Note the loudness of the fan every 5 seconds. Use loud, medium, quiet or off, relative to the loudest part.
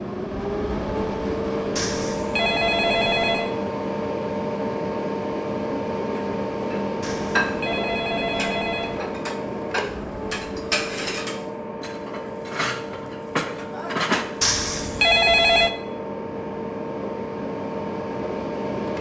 loud, loud, medium, loud.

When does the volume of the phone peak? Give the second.
15 s.